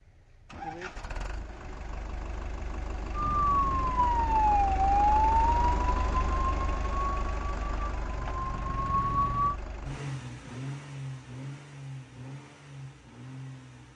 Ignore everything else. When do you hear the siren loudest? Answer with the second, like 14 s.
5 s.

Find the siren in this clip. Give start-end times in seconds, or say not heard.
3.1-9.6.